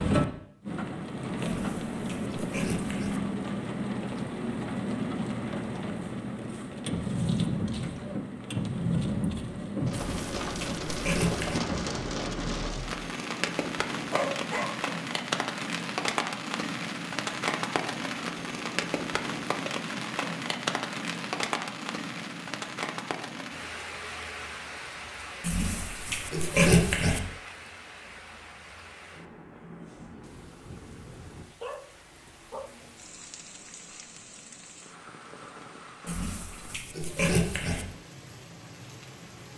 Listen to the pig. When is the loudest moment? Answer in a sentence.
The volume of the pig peaks at 27 seconds.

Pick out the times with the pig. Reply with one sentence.
The pig can be heard from 1.4 to 3.2 s, from 9.9 to 11.6 s, from 25.4 to 27.2 s and from 36.0 to 37.9 s.